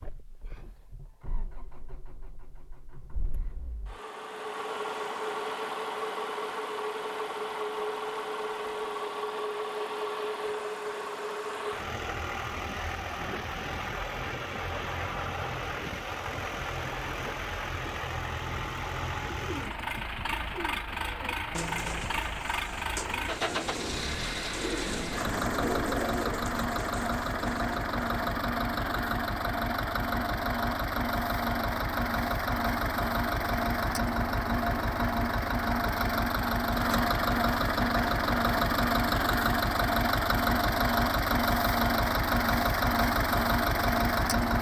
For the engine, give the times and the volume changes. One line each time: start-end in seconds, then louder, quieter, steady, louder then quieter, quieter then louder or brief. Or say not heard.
0.0-44.5 louder.